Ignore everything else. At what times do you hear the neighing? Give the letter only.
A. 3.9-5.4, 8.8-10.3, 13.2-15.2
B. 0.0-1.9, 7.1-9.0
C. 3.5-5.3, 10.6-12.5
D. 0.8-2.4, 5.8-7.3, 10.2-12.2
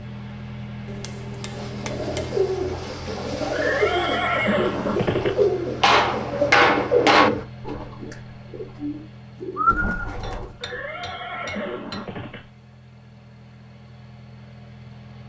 C.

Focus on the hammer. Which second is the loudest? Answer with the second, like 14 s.
7 s.